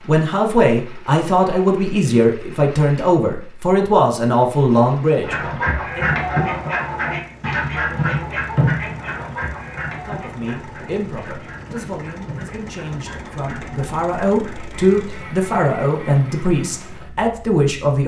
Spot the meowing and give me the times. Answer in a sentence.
You can't hear the meowing here.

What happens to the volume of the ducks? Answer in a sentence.
The volume of the ducks goes down.